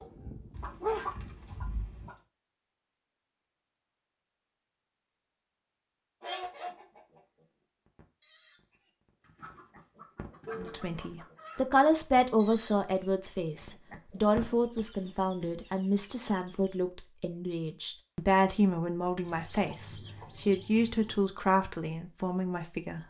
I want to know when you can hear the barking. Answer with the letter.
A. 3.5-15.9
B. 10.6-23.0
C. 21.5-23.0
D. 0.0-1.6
D.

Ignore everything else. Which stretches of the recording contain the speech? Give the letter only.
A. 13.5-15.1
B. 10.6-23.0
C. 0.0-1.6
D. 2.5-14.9
B.